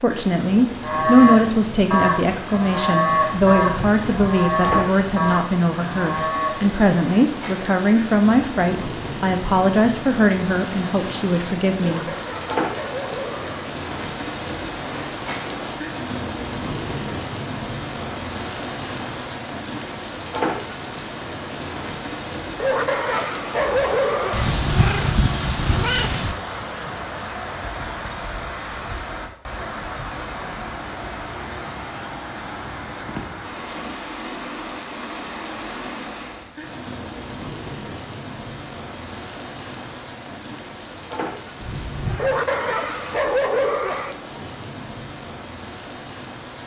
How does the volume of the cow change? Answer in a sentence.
The loudness of the cow goes down.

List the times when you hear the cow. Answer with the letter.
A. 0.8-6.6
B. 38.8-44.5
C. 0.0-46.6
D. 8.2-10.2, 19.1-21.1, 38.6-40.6
A.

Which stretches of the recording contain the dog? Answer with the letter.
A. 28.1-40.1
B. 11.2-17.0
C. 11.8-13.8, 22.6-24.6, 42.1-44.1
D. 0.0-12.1
C.